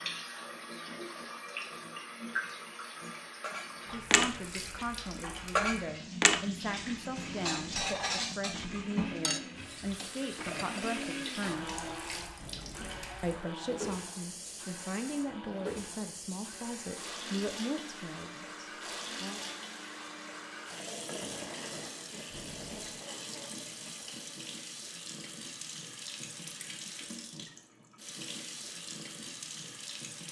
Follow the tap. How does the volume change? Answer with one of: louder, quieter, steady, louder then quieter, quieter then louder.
steady.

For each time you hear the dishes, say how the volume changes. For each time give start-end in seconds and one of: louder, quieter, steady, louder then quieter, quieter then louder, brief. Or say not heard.
3.4-11.1 quieter.